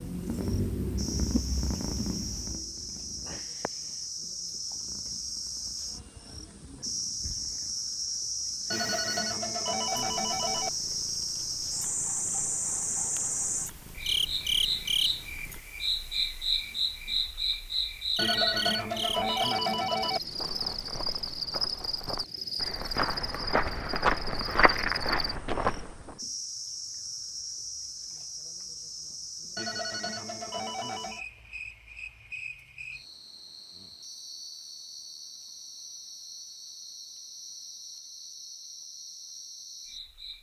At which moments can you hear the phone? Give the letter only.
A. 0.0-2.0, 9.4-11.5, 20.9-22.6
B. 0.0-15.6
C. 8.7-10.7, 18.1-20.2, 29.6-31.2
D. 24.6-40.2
C.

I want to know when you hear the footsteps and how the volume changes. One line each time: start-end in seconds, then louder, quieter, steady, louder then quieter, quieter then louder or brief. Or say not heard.
20.3-26.1 louder.